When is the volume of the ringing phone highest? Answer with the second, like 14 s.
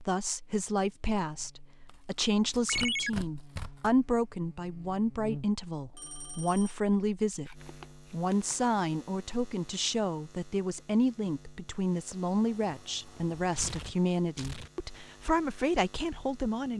3 s.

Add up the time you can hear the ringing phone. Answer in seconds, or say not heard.
2 s.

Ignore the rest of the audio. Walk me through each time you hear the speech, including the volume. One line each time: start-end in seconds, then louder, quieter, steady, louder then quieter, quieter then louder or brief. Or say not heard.
0.0-16.7 steady.